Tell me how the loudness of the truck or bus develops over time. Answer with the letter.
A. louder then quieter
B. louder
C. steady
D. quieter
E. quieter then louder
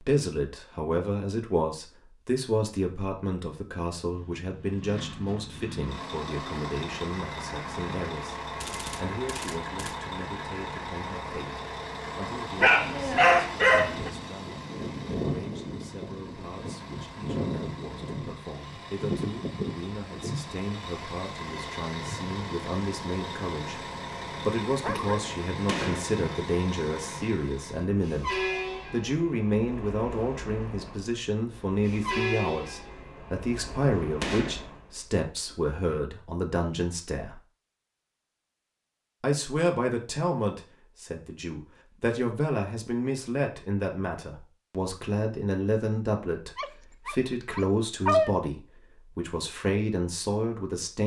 C.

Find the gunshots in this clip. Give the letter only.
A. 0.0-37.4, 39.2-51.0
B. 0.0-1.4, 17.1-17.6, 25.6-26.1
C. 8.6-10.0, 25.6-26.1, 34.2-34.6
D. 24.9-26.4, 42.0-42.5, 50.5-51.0
C.